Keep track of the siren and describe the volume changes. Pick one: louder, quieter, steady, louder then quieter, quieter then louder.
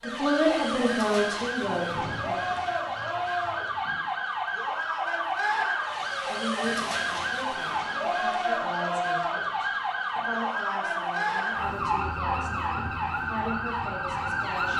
steady.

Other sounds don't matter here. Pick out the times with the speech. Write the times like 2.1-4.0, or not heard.
0.0-2.5, 6.2-14.7.